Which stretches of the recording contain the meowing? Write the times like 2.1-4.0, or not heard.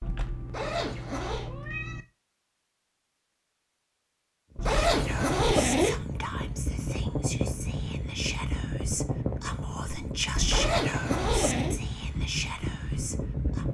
0.0-2.0, 4.5-5.0, 10.3-10.9.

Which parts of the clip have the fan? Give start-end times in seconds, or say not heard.
4.5-13.6.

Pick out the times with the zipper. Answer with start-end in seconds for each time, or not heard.
0.5-1.5, 4.7-6.0, 10.5-11.8.